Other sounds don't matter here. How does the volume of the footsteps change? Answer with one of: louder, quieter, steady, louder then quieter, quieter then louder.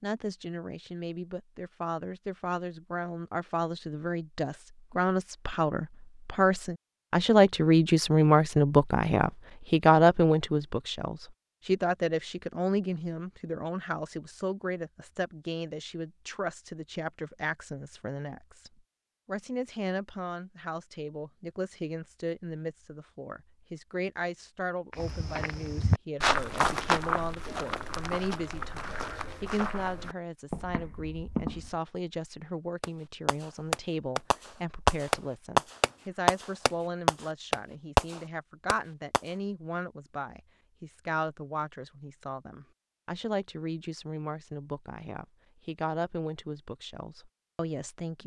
quieter.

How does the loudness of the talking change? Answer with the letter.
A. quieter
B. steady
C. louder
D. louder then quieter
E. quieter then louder
A.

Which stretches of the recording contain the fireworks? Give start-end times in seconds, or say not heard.
32.8-39.2.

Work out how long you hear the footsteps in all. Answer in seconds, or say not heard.
7 s.